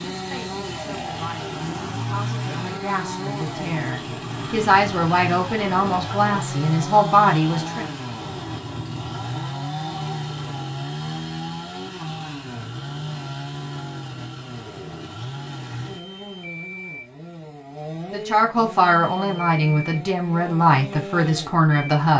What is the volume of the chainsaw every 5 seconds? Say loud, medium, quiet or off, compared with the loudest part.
loud, loud, loud, medium, medium.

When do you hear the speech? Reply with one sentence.
You can hear the speech from 0.0 to 7.9 s and from 18.1 to 22.1 s.